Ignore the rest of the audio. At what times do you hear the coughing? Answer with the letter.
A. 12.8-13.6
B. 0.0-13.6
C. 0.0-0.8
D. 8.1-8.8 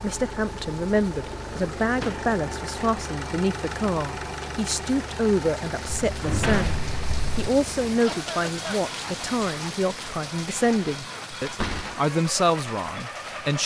D.